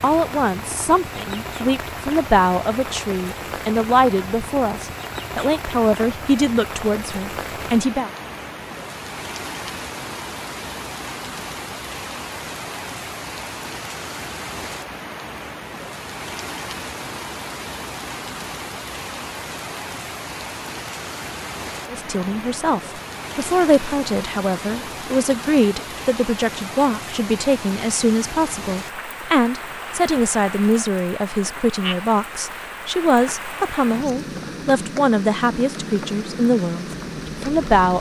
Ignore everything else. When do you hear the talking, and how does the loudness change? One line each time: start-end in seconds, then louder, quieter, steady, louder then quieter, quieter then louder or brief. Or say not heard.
0.0-8.1 steady
21.9-37.9 steady.